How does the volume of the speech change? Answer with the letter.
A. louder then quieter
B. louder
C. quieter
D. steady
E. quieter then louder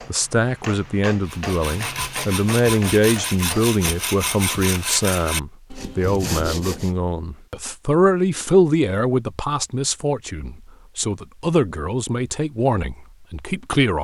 D.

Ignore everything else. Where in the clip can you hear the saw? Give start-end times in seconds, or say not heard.
1.2-6.9.